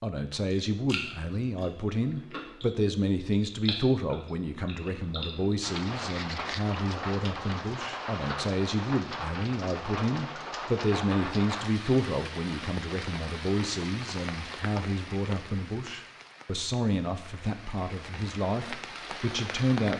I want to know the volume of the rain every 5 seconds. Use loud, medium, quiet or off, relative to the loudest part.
off, loud, loud, medium.